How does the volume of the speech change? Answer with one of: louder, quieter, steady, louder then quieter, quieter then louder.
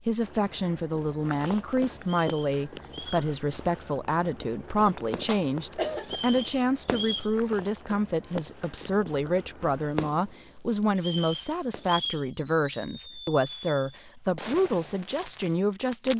steady.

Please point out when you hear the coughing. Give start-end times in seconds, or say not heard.
5.2-6.2.